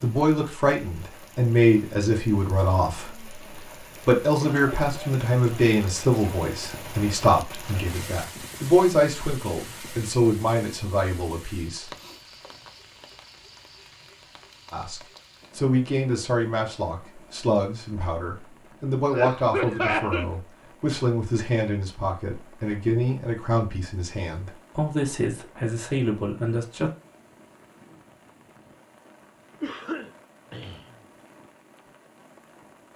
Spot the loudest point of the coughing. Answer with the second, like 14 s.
20 s.